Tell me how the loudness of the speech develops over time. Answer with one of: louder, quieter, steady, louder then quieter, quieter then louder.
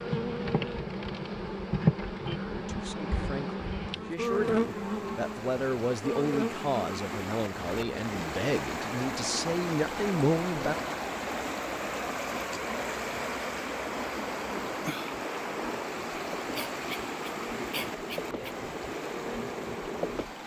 louder.